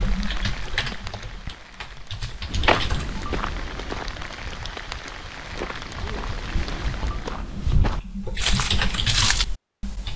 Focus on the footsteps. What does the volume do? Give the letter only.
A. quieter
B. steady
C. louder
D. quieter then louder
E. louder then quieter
D.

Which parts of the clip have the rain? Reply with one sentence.
The rain can be heard from 0.0 to 7.5 s.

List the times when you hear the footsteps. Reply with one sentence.
You can hear the footsteps from 2.5 to 9.4 s.